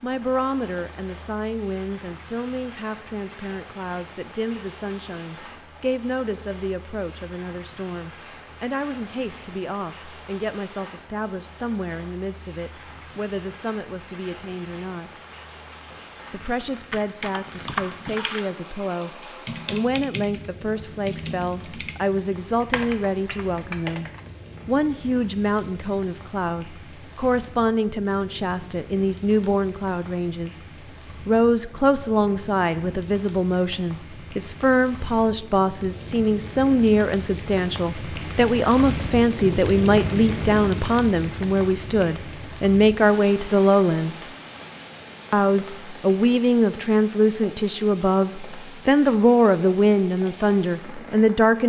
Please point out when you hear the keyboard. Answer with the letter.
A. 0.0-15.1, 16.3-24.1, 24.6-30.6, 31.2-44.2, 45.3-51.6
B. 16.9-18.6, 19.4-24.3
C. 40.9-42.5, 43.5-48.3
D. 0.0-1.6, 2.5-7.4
B.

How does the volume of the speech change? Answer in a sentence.
The volume of the speech goes up.